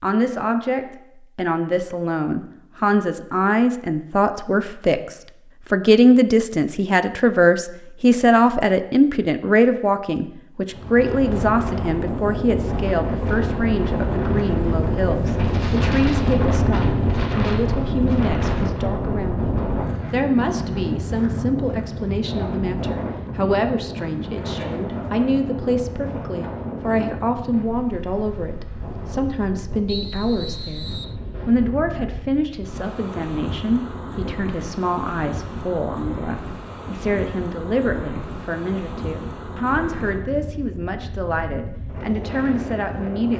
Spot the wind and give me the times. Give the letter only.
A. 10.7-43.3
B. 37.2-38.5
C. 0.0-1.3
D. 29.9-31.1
A.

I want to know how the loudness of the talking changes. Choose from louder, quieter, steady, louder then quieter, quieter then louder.
quieter.